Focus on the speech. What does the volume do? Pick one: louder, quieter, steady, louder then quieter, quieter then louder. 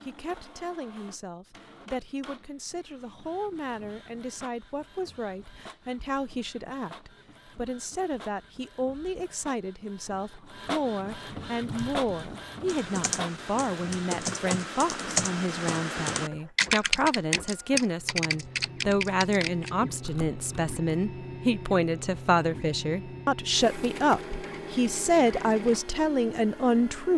louder.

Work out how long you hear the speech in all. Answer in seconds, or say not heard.
27 s.